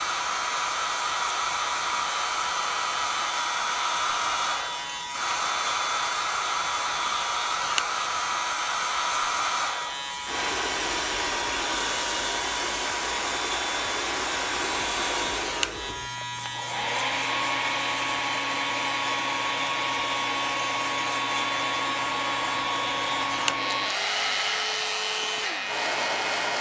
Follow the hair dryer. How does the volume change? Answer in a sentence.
The loudness of the hair dryer stays about the same.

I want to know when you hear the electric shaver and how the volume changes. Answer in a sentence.
You can hear the electric shaver from 0.0 to 26.5 s, at a steady volume.